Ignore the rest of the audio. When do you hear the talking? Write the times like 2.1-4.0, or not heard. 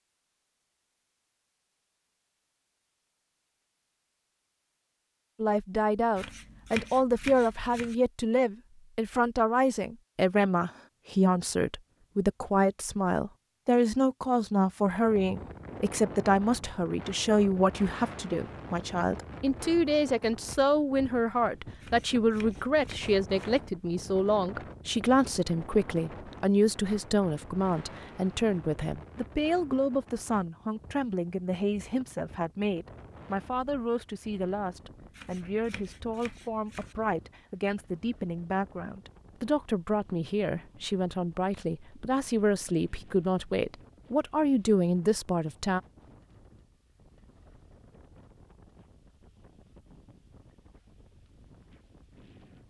5.4-45.8.